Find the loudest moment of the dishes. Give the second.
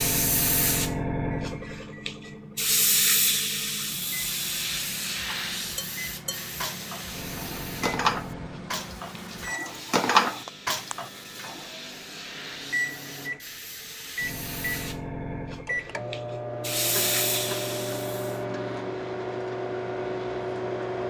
10 s.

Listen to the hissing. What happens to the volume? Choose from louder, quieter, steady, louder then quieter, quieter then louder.
quieter then louder.